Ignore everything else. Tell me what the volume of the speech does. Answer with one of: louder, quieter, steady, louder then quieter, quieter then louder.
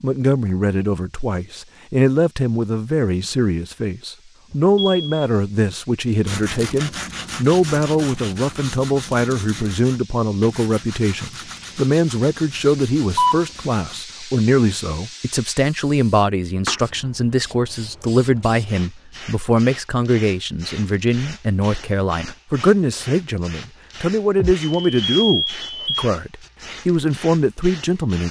steady.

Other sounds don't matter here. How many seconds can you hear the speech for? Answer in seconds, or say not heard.
28 s.